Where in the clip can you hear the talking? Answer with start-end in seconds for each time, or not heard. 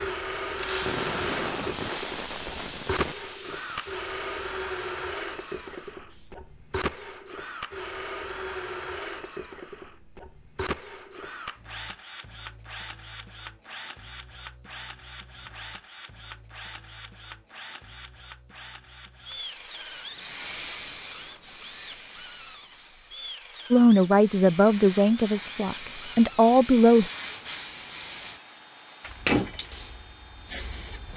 23.7-27.1.